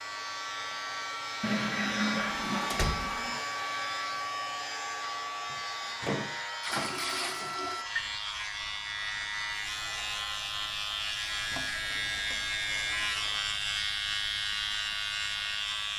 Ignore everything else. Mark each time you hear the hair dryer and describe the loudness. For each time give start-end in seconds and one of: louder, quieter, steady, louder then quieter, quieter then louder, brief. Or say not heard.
0.0-15.9 quieter.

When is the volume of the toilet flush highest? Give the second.
2 s.